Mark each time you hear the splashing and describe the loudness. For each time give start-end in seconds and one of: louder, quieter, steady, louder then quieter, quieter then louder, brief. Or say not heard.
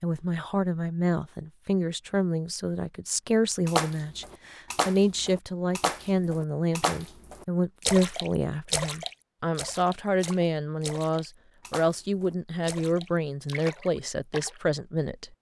3.6-14.6 quieter.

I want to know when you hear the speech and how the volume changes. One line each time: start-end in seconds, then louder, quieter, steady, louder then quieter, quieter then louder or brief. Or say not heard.
0.0-15.3 steady.